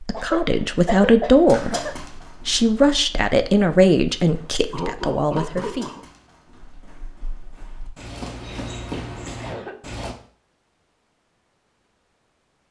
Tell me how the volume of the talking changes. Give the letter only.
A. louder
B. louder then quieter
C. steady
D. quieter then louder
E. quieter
E.